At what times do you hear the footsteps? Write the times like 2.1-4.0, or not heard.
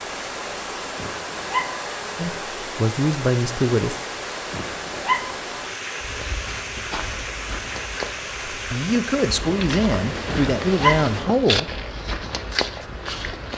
6.0-13.5.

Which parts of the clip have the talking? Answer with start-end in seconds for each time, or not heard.
2.1-4.0, 8.5-11.7.